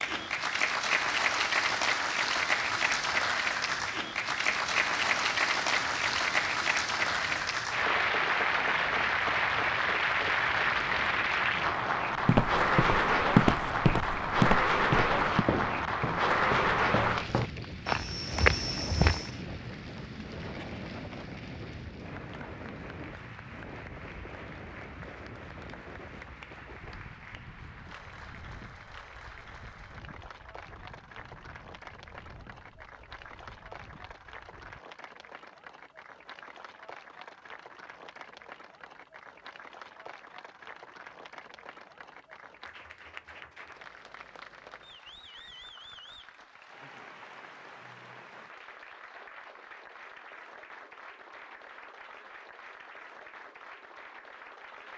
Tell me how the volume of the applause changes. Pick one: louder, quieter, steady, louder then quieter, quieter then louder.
quieter.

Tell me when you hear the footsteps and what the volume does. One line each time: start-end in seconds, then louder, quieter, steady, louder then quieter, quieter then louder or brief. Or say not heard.
12.2-19.3 quieter then louder.